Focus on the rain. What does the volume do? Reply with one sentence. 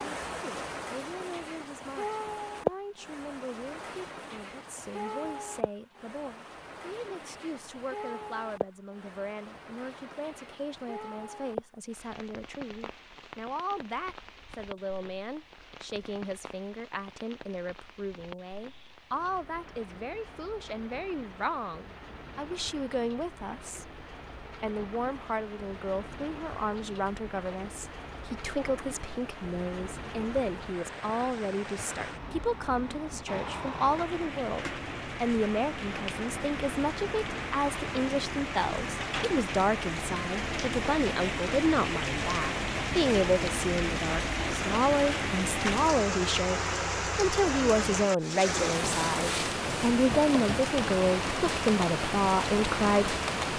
The loudness of the rain goes down, then up.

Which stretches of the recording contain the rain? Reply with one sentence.
The rain can be heard from 0.0 to 53.5 s.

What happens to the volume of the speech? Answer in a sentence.
The volume of the speech goes up.